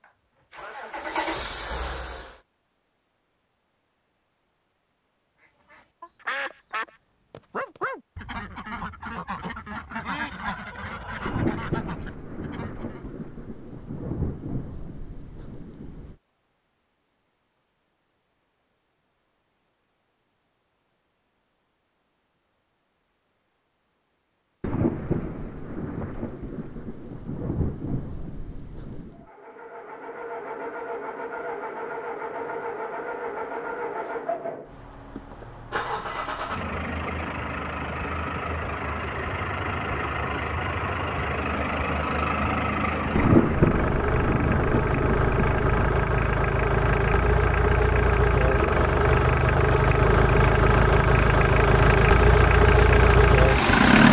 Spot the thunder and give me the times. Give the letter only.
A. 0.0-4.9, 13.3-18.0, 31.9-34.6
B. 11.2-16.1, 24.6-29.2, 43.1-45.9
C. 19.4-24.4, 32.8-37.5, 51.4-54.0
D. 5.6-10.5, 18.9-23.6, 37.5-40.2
B.